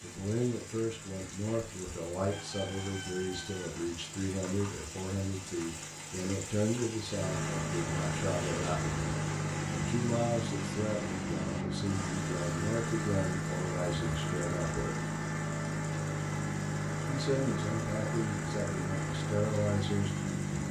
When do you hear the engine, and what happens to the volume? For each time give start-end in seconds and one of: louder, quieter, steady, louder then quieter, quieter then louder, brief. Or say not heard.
0.0-20.6 louder.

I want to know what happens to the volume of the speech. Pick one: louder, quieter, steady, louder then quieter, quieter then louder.
steady.